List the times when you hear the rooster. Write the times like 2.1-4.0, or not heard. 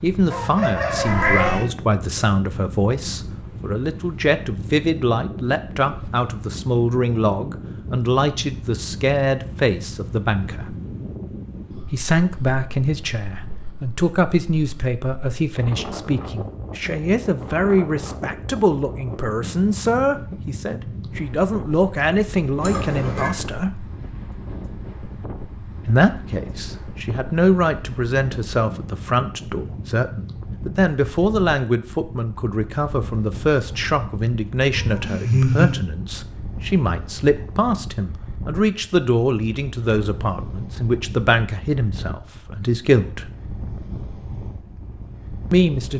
0.3-1.6.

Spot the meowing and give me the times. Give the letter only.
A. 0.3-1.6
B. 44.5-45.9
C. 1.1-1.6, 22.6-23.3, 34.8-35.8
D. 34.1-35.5
C.